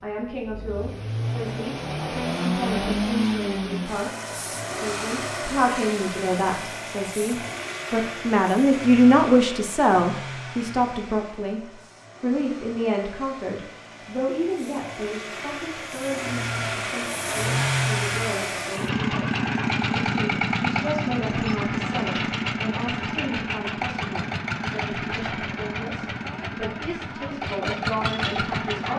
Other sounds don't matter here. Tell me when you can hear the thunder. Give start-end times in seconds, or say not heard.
not heard.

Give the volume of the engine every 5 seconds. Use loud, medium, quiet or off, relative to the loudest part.
loud, medium, quiet, loud, loud, loud.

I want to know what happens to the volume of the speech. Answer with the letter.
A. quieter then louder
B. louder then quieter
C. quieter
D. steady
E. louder
B.